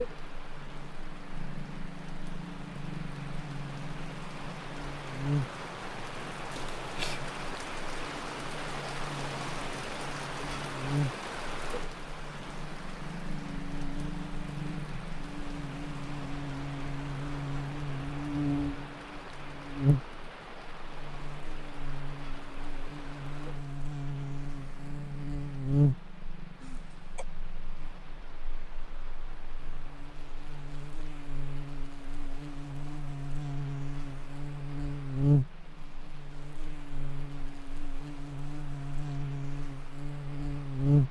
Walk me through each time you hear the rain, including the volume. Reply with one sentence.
You can hear the rain from 0.0 to 41.0 s, getting quieter.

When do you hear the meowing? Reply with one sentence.
The meowing can be heard from 6.5 to 7.2 s.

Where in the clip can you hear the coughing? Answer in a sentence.
You can hear the coughing from 26.6 to 27.2 s.